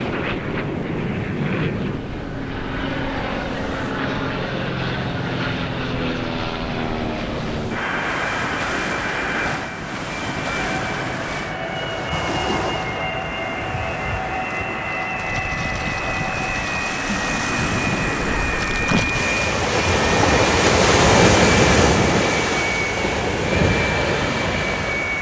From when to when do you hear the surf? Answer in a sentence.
The surf can be heard from 0.0 to 25.1 s.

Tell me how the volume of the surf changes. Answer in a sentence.
The loudness of the surf goes up.